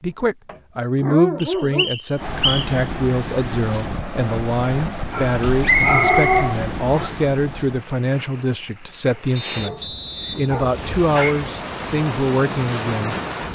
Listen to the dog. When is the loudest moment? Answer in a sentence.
The volume of the dog peaks at 6 seconds.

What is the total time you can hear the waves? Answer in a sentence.
You can hear the waves for 11 seconds altogether.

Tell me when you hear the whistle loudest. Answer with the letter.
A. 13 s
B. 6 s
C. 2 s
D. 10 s
B.